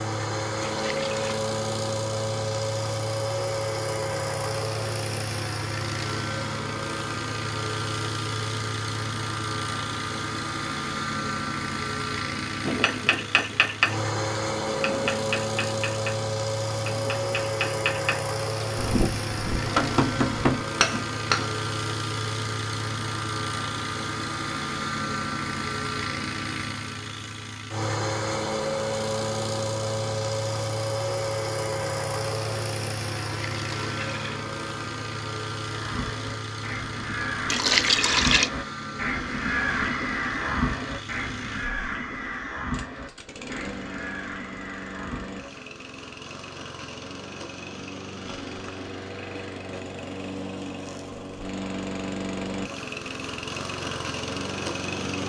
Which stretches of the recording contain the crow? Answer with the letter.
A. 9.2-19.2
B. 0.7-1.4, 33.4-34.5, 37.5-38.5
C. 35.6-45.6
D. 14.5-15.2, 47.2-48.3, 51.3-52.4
C.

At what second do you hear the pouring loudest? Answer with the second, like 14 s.
38 s.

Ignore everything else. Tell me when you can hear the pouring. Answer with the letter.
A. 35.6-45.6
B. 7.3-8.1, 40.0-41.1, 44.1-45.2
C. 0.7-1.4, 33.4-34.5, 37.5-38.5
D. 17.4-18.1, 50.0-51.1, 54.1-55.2
C.